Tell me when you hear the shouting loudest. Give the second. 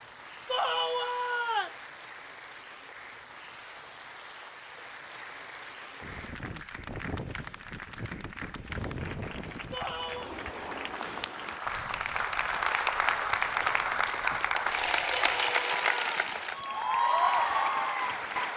1 s.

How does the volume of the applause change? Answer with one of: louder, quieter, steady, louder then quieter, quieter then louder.
louder.